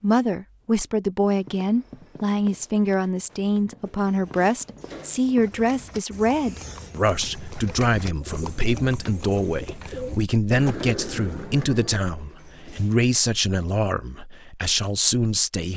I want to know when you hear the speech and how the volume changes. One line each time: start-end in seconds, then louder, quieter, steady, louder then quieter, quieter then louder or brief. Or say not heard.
0.0-15.7 steady.